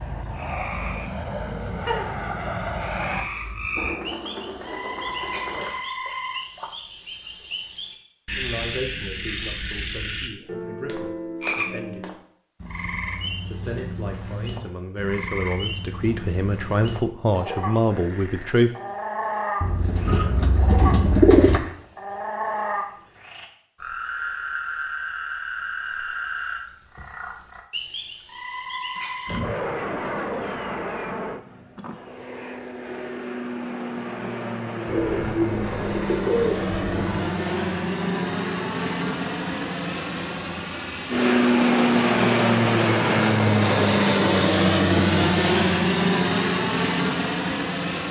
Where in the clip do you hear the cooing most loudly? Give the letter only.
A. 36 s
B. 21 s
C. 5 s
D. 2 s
B.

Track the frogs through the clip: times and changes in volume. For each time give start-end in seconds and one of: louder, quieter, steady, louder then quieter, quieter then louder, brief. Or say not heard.
0.0-29.4 steady.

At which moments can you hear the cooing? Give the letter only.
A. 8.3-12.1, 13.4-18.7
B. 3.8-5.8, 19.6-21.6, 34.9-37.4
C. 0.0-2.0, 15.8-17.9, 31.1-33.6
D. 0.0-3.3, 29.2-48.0
B.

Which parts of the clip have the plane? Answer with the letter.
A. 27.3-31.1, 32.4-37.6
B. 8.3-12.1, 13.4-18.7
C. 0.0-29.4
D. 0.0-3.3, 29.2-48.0
D.